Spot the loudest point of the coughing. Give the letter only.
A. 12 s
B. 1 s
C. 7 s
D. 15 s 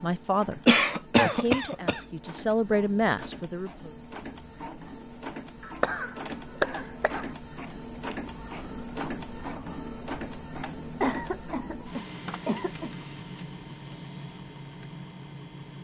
B.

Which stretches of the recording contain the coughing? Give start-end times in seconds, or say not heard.
0.7-2.0, 5.7-7.2, 11.0-12.9.